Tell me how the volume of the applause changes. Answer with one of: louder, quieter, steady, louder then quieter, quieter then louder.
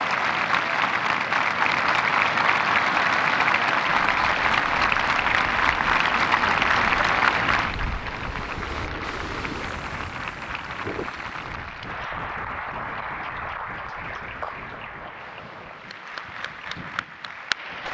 quieter.